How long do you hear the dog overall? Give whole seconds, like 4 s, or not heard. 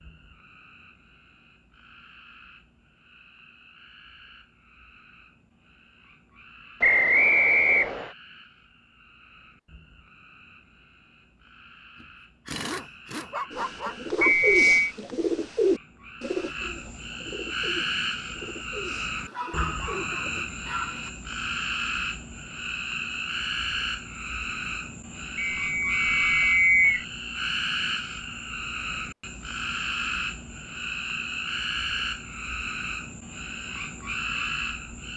4 s.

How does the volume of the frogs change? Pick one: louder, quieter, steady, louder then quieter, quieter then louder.
louder.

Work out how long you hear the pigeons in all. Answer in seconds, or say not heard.
7 s.